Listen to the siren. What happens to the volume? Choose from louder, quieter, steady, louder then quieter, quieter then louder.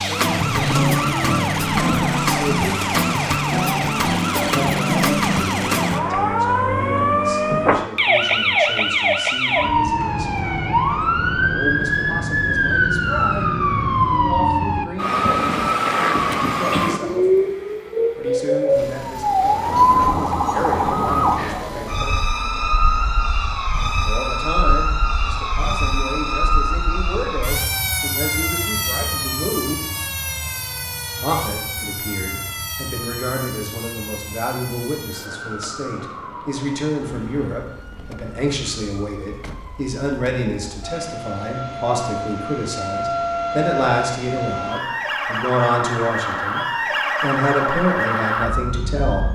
quieter then louder.